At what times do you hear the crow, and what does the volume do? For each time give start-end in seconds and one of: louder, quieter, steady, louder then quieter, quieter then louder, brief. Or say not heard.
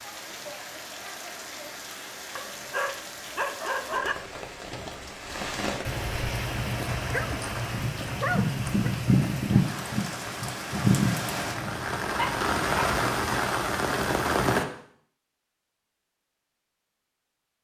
not heard.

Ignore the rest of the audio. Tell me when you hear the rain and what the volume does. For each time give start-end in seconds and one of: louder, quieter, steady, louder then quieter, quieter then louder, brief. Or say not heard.
0.0-14.7 louder.